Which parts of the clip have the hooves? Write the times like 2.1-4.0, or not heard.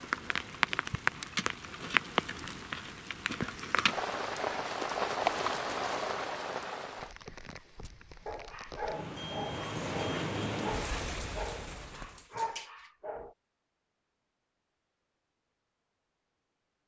4.6-6.2.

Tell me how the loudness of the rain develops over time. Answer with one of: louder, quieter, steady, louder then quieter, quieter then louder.
quieter then louder.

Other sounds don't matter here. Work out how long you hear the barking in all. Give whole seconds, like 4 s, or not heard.
6 s.